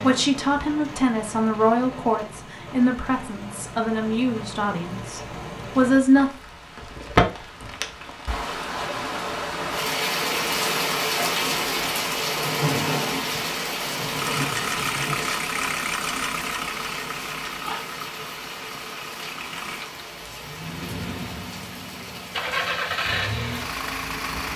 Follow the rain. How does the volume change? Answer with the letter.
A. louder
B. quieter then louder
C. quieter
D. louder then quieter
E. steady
D.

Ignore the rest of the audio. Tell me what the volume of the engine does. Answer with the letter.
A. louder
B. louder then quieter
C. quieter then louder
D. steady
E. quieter
C.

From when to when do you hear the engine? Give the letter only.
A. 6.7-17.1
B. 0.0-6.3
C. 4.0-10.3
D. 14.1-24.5
D.